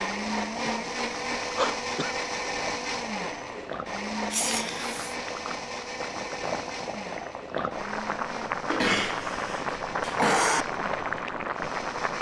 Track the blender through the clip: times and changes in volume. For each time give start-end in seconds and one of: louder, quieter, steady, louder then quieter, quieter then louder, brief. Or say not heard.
0.0-12.1 quieter.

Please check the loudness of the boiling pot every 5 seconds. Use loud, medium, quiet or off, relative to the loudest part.
medium, loud, loud.